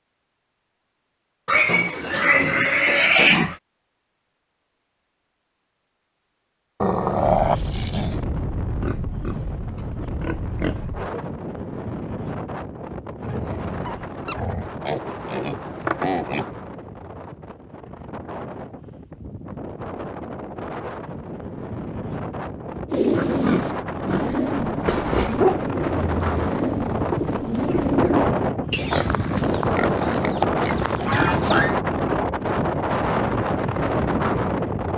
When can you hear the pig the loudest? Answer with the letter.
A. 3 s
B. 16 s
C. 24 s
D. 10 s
A.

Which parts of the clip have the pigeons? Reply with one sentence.
The pigeons can be heard from 22.9 to 29.1 s.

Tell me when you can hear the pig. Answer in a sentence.
The pig can be heard from 1.4 to 3.5 s, from 8.8 to 11.2 s, from 14.8 to 16.5 s, from 23.1 to 24.9 s and from 28.9 to 31.8 s.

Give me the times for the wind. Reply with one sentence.
You can hear the wind from 7.0 to 34.9 s.